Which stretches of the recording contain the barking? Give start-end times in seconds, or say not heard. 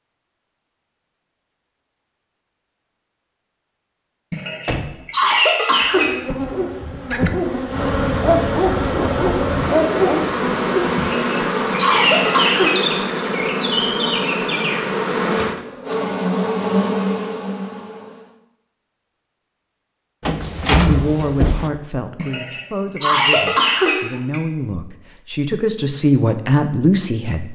5.9-11.0.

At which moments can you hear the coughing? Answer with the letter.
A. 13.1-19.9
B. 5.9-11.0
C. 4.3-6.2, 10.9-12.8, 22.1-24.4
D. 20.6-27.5
C.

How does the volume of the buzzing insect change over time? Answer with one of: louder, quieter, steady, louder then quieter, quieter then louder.
steady.